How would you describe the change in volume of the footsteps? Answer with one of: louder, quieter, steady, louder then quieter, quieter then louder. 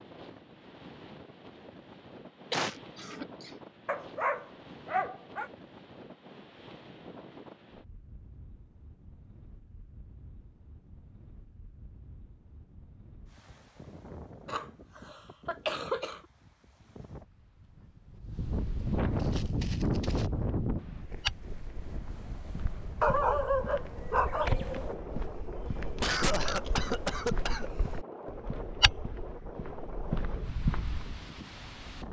quieter then louder.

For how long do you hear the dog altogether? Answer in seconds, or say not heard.
3 s.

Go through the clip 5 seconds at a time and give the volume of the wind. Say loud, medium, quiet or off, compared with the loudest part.
quiet, quiet, quiet, loud, loud, medium, medium.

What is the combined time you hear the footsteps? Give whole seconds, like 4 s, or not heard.
12 s.